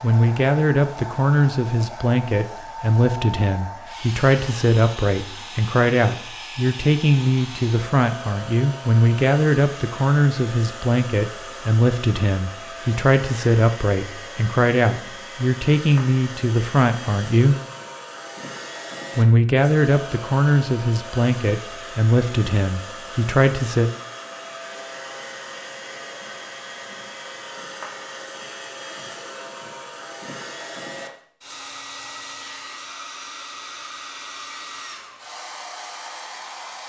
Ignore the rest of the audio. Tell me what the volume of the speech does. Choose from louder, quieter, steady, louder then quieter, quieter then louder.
steady.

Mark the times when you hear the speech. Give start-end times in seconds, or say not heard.
0.0-17.6, 19.1-23.9.